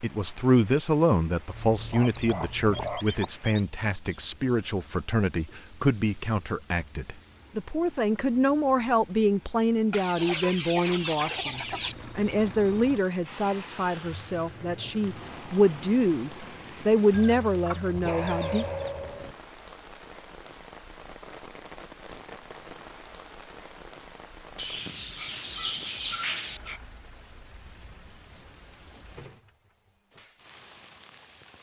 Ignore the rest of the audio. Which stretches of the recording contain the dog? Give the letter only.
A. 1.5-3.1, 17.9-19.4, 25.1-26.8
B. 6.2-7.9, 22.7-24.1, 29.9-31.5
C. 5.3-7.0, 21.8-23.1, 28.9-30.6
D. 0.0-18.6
A.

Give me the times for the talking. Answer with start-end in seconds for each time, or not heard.
0.0-18.6.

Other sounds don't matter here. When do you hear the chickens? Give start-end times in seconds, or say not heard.
1.8-3.6, 9.9-11.9, 17.1-18.9, 24.6-26.6.